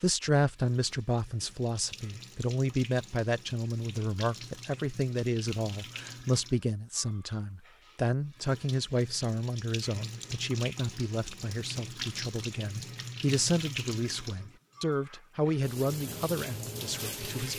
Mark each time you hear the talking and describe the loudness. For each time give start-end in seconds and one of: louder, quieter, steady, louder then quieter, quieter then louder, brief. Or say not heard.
0.0-17.5 steady.